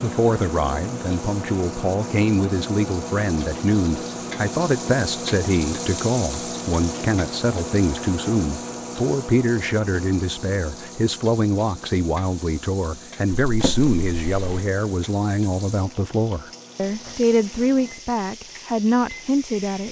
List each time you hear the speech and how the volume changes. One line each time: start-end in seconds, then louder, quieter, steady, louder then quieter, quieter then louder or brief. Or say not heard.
0.0-19.8 steady.